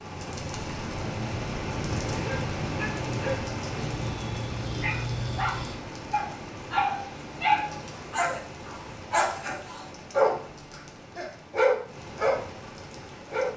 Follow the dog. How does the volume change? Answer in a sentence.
The loudness of the dog goes up.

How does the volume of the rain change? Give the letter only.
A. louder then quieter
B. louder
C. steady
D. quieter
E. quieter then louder
D.